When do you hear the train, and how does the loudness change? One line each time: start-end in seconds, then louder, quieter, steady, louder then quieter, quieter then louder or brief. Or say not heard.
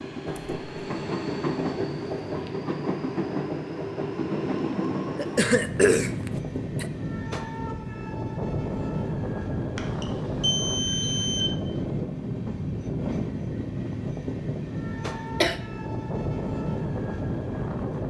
0.0-18.0 steady.